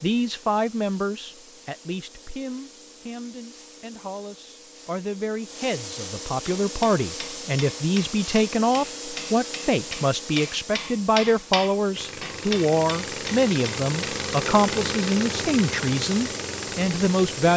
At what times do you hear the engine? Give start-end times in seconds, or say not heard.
11.9-17.5.